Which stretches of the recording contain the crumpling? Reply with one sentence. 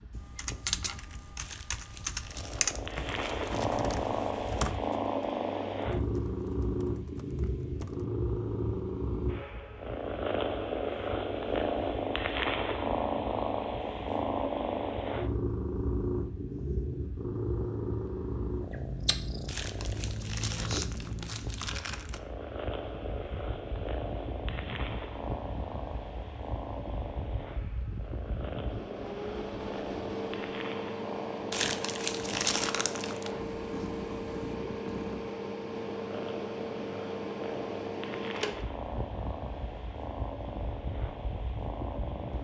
You can hear the crumpling from 1.4 to 3.7 s, from 19.4 to 22.2 s and from 31.5 to 33.3 s.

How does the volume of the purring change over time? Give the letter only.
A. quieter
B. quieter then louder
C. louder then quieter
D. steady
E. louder
A.